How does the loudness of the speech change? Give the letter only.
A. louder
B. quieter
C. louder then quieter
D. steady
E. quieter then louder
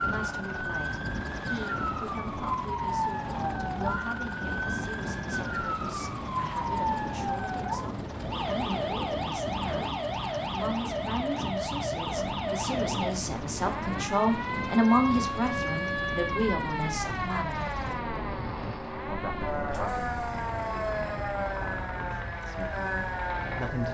C.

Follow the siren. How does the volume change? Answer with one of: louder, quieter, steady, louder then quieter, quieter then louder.
steady.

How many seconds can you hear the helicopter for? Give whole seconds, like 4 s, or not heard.
24 s.